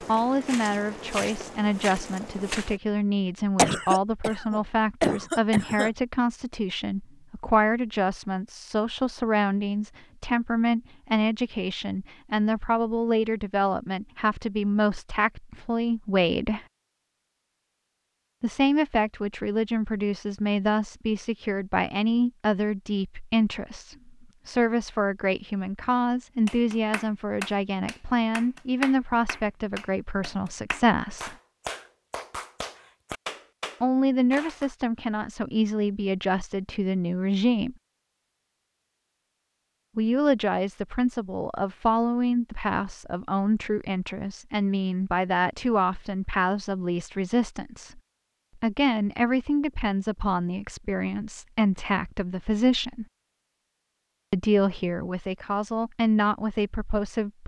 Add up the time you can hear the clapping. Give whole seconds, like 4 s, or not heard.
8 s.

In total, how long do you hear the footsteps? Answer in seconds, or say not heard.
3 s.